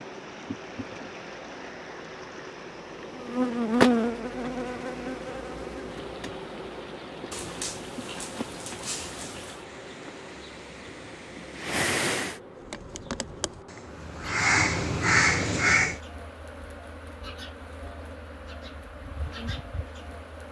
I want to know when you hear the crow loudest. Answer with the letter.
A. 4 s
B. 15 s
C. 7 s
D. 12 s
B.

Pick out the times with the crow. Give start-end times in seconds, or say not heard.
12.6-15.9.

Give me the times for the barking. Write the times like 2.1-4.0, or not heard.
7.3-9.7.